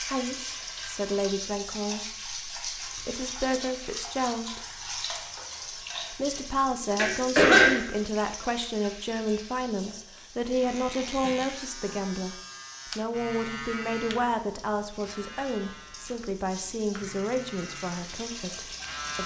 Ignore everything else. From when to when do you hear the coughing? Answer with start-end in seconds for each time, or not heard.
7.0-7.8, 10.2-12.0.